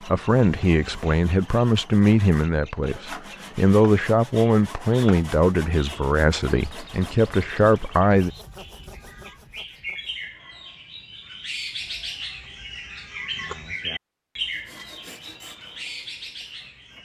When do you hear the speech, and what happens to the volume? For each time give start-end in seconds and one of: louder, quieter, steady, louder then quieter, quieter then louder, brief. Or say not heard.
0.1-8.3 steady.